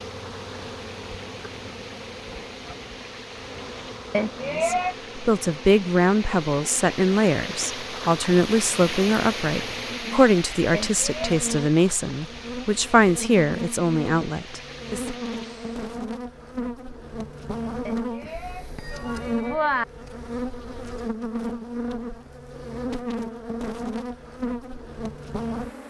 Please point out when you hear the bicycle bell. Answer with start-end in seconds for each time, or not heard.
4.1-5.0, 10.7-11.4, 17.9-19.9.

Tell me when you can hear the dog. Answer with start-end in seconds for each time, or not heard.
not heard.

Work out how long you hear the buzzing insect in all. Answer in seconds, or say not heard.
26 s.